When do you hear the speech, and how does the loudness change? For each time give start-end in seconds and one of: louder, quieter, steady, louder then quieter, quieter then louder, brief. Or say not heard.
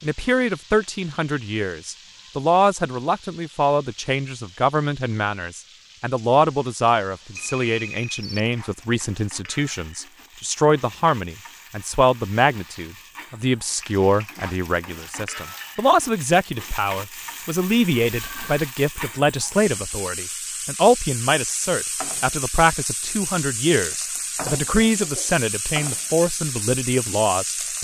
0.0-27.7 steady.